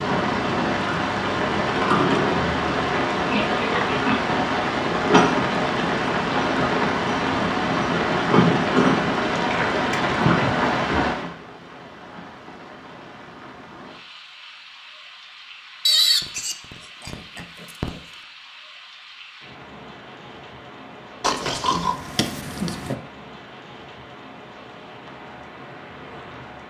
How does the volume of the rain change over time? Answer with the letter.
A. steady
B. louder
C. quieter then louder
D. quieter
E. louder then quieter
D.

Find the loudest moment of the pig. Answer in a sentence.
The loudest moment of the pig is at 16 seconds.